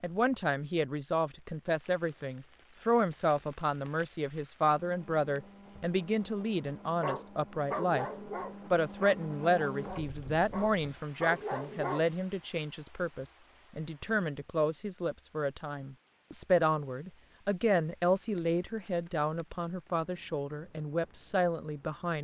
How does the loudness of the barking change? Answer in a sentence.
The loudness of the barking goes down, then up.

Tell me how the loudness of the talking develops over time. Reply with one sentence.
The loudness of the talking stays about the same.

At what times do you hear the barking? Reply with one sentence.
The barking can be heard from 7.0 to 12.1 s.